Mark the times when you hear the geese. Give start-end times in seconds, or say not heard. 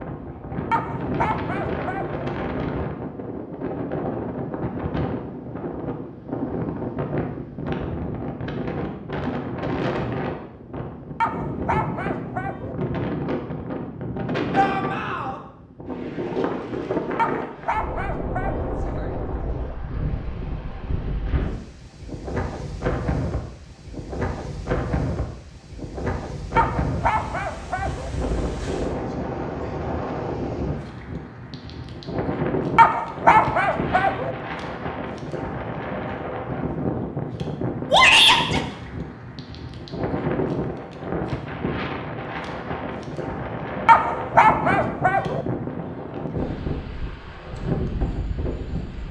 not heard.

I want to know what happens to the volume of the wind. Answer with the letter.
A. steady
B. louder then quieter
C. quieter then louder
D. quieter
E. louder
A.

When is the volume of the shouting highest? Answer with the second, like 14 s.
38 s.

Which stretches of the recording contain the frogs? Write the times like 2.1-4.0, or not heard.
not heard.